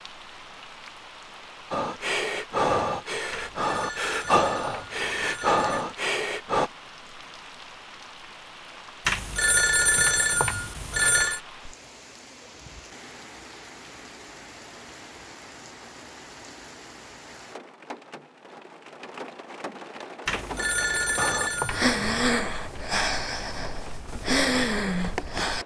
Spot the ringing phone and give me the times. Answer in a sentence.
You can hear the ringing phone from 3.3 to 5.8 s, from 9.1 to 11.4 s and from 20.2 to 21.9 s.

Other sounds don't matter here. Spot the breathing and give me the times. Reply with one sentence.
The breathing can be heard from 1.7 to 6.7 s and from 21.1 to 25.6 s.